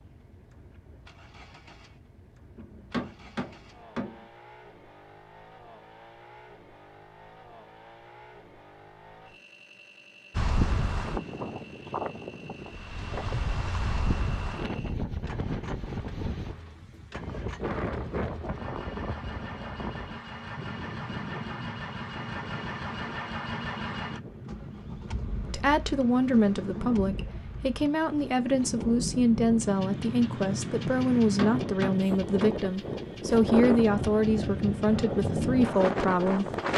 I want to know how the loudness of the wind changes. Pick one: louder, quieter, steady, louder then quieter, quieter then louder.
quieter then louder.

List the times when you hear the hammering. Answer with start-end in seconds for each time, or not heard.
2.5-4.2, 31.2-32.6.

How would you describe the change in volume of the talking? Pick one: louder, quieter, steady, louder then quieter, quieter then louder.
steady.